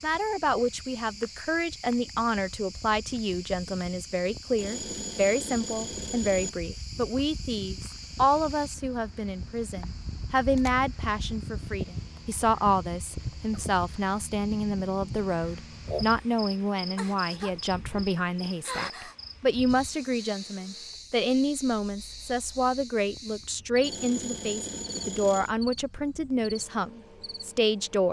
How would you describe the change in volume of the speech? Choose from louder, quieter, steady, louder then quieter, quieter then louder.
steady.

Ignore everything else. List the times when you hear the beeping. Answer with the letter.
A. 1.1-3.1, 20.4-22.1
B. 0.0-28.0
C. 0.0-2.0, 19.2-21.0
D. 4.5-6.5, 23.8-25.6
D.